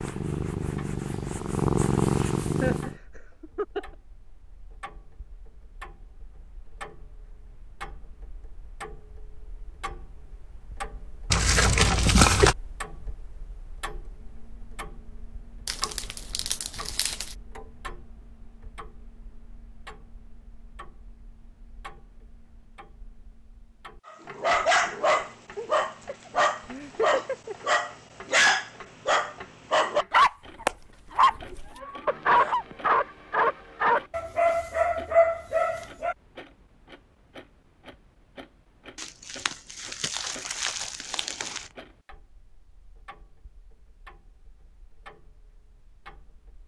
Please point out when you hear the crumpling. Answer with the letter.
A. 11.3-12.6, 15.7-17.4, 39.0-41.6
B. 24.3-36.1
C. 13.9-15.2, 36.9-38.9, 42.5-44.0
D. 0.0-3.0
A.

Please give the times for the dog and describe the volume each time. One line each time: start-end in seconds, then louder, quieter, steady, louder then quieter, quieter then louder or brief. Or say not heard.
24.3-36.1 steady.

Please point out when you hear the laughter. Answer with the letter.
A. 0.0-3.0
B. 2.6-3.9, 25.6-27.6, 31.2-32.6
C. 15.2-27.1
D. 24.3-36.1
B.